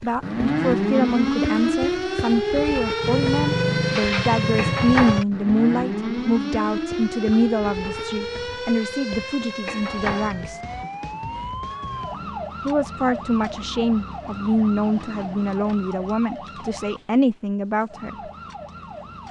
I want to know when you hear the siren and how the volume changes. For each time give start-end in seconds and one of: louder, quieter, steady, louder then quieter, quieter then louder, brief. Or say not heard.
0.0-19.2 quieter.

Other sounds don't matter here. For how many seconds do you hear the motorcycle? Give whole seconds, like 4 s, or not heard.
2 s.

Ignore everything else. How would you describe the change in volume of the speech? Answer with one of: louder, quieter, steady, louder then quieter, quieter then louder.
steady.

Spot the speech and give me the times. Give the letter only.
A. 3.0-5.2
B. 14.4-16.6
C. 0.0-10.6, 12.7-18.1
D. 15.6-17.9
C.